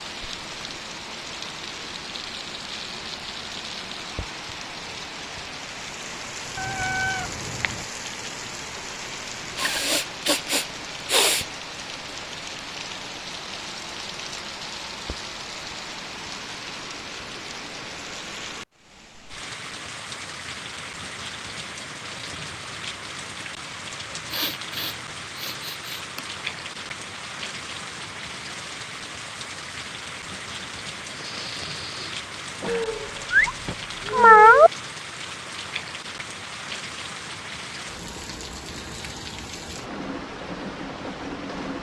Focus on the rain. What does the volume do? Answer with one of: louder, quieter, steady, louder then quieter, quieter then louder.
steady.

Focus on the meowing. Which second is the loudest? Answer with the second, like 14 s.
34 s.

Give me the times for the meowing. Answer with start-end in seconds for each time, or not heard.
6.5-7.8, 32.6-34.7.